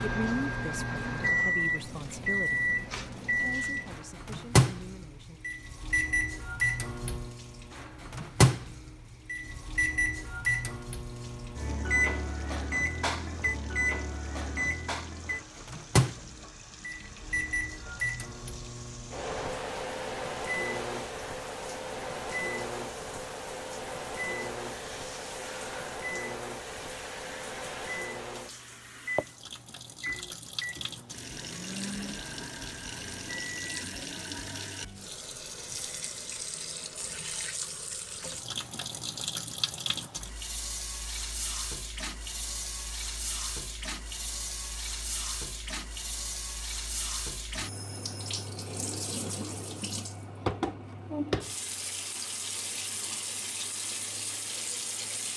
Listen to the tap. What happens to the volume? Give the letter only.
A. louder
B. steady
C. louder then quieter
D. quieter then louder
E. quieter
A.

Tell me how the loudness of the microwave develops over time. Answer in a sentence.
The loudness of the microwave goes down.